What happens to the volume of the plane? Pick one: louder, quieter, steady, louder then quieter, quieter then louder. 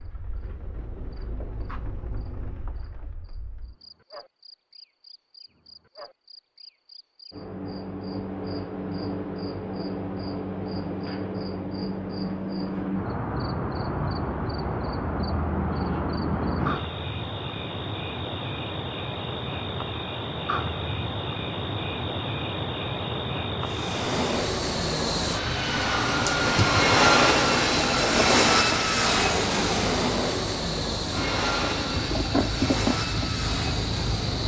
louder then quieter.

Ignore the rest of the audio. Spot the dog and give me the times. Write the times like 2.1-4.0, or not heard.
not heard.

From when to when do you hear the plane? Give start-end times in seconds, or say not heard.
23.6-34.4.